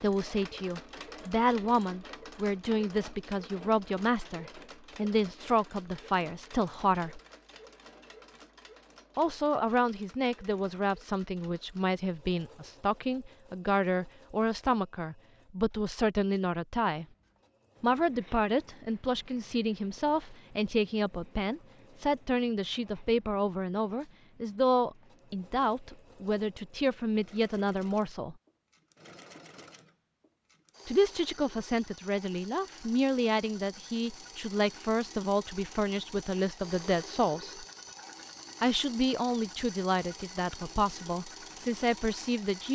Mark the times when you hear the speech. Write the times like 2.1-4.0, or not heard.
0.0-7.2, 9.2-17.1, 17.8-28.4, 30.9-37.6, 38.6-42.6.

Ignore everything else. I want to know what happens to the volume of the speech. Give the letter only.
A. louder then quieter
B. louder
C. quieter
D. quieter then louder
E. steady
E.